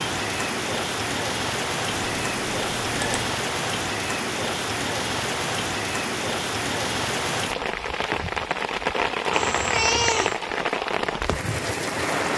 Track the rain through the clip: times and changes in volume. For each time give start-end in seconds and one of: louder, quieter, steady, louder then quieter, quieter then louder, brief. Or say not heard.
0.0-12.3 steady.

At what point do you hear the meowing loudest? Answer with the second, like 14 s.
10 s.